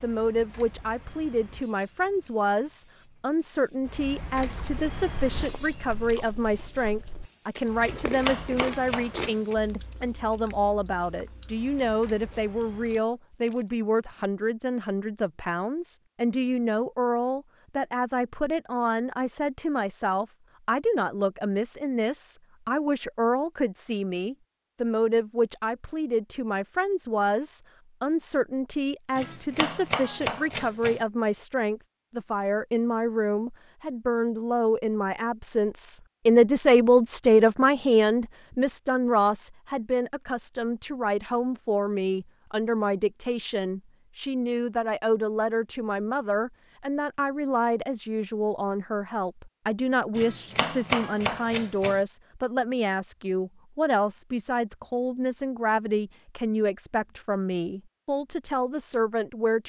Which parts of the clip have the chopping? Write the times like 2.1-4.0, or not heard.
7.8-9.6, 29.1-31.0, 50.1-52.0.